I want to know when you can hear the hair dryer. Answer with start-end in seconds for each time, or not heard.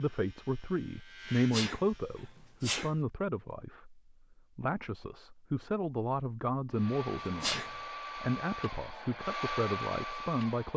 6.7-10.7.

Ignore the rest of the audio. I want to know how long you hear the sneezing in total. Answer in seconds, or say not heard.
2 s.